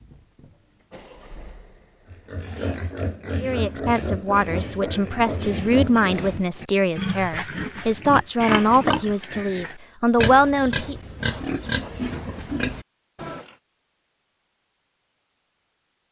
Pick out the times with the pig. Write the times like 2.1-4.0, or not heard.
2.1-13.5.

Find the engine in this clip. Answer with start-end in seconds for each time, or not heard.
0.0-2.3.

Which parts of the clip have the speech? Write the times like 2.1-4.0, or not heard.
3.4-11.2.